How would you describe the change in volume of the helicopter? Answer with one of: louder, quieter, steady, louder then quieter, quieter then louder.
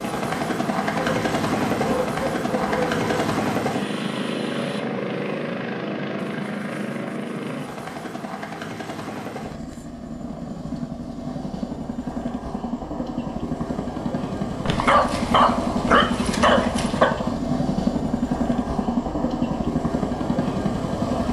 quieter then louder.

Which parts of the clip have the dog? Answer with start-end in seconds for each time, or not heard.
0.9-3.4, 14.7-17.1.